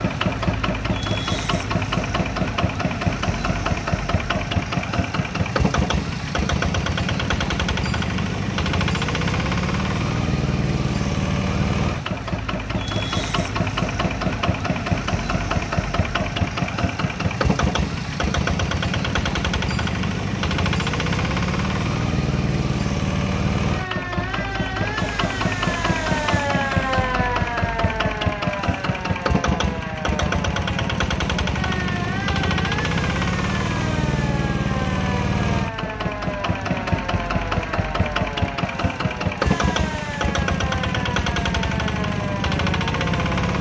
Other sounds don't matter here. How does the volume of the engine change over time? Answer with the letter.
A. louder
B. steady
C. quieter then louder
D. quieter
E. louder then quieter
B.